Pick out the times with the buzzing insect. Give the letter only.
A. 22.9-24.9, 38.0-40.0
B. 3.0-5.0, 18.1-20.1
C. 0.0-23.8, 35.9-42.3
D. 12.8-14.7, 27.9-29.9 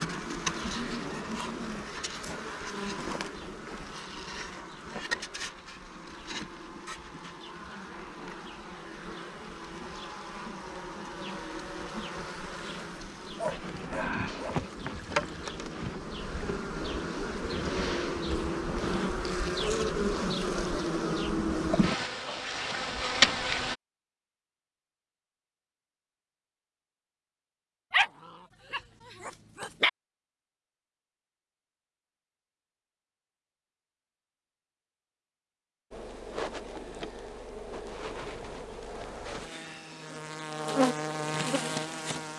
C.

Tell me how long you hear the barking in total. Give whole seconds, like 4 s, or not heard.
4 s.